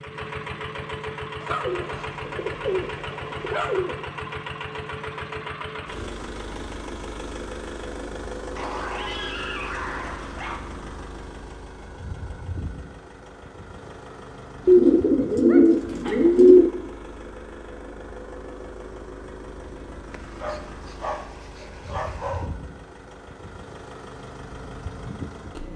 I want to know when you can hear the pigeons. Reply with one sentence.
The pigeons can be heard from 1.6 to 4.0 s and from 14.7 to 16.7 s.